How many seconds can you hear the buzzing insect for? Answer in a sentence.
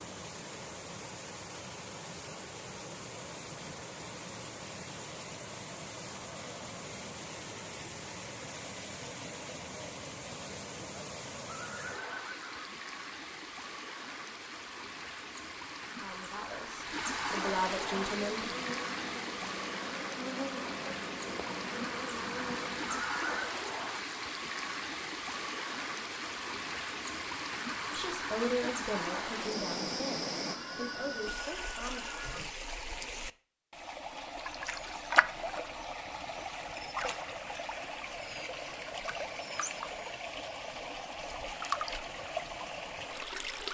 The buzzing insect can be heard for 5 seconds in total.